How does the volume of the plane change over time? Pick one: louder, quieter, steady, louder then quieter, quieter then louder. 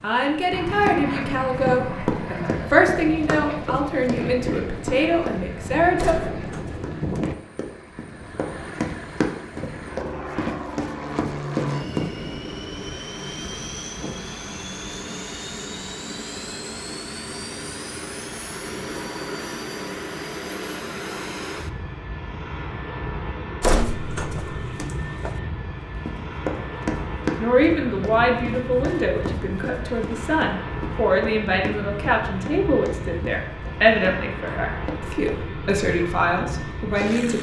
steady.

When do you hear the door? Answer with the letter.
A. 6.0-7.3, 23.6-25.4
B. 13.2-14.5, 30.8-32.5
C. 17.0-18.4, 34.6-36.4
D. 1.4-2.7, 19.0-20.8
A.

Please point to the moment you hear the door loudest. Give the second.
24 s.